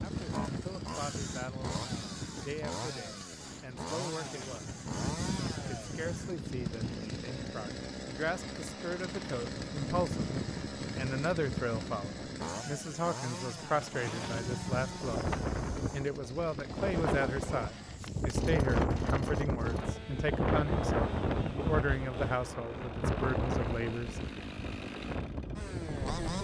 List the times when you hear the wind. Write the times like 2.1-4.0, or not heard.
0.0-26.3.